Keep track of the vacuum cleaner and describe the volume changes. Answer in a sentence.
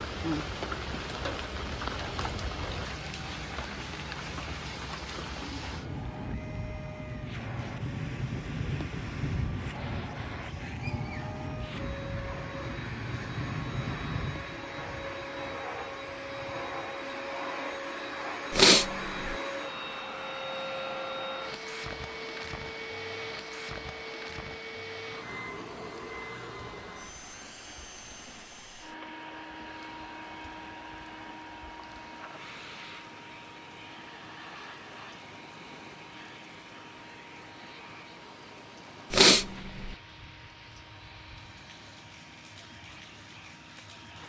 The volume of the vacuum cleaner goes up, then down.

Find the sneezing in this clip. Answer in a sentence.
The sneezing can be heard from 18.5 to 19.4 s and from 39.1 to 40.0 s.